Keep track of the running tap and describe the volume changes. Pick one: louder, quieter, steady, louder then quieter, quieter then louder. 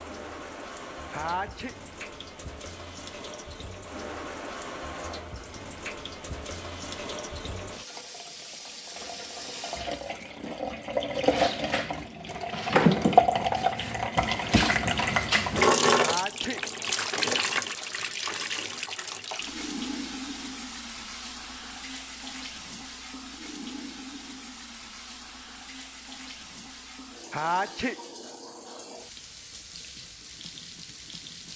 louder then quieter.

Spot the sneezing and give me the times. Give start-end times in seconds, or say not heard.
1.1-1.8, 15.9-16.6, 27.3-27.9.